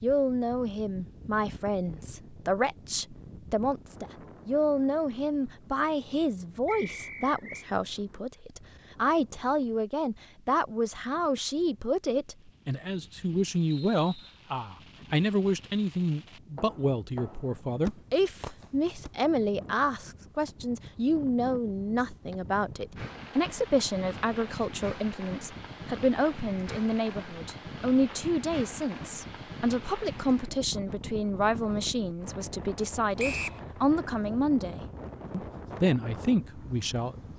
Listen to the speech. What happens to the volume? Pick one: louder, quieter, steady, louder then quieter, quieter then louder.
steady.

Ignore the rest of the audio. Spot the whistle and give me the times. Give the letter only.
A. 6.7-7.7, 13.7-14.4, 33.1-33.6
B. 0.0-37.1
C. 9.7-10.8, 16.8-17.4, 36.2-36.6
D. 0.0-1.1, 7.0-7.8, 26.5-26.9
A.